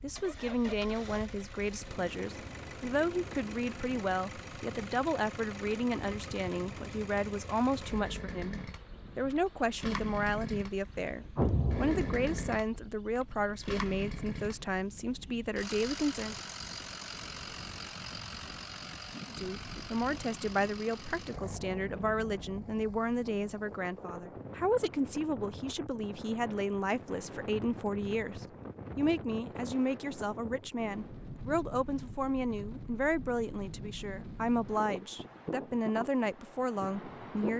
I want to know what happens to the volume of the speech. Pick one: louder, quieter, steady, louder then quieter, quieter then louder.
steady.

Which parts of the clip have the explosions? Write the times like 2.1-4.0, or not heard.
11.3-12.6.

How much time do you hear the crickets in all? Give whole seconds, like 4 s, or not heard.
not heard.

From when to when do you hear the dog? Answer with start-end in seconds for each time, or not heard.
not heard.